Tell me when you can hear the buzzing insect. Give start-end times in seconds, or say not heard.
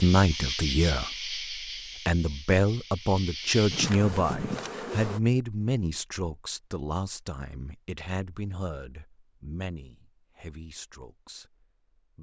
0.0-5.2.